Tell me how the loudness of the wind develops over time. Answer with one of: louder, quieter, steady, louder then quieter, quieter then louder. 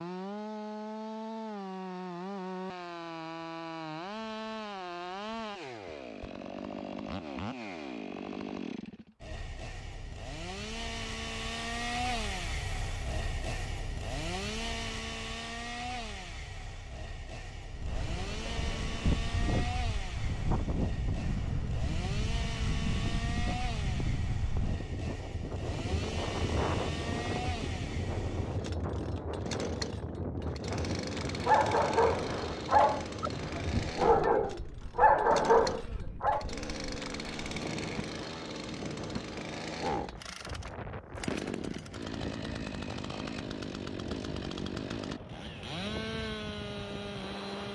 quieter.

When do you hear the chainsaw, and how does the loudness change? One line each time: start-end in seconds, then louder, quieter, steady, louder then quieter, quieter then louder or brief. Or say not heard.
0.0-47.7 steady.